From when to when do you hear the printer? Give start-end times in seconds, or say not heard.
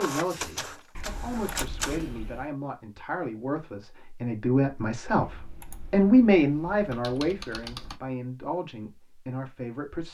0.0-2.2.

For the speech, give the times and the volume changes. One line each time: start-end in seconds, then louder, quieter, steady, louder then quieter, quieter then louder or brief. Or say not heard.
0.0-10.0 louder then quieter.